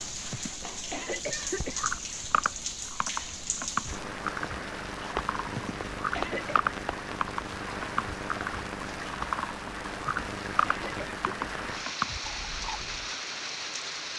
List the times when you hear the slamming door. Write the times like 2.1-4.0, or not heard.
not heard.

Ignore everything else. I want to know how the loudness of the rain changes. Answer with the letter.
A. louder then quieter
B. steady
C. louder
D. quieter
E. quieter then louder
B.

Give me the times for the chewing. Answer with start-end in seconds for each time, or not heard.
1.4-13.2.